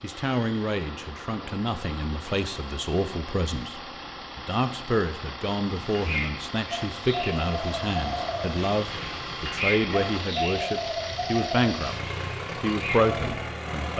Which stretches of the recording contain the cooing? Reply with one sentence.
The cooing can be heard from 5.8 to 13.3 s.